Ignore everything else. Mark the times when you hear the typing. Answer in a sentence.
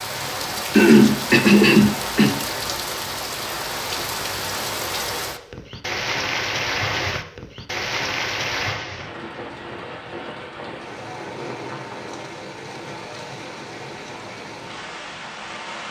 You can't hear the typing here.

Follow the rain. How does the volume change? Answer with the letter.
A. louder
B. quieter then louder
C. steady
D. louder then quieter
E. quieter
E.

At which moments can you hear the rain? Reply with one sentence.
You can hear the rain from 0.0 to 15.8 s.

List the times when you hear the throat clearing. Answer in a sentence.
The throat clearing can be heard from 0.7 to 2.4 s.